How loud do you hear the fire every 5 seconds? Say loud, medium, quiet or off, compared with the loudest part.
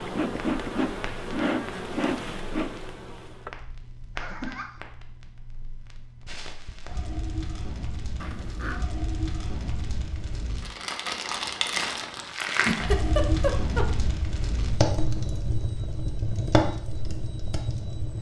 quiet, medium, loud, loud.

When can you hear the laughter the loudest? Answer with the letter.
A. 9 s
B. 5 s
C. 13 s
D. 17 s
C.